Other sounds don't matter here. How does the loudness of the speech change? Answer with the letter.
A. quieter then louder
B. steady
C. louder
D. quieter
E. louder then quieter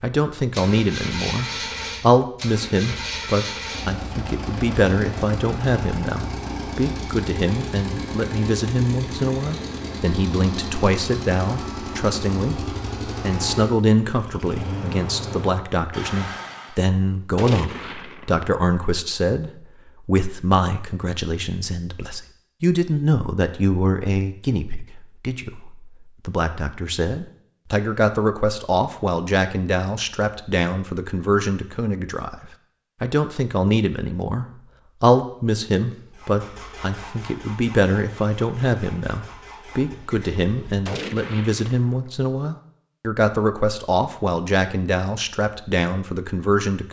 B.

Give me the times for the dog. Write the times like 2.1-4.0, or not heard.
not heard.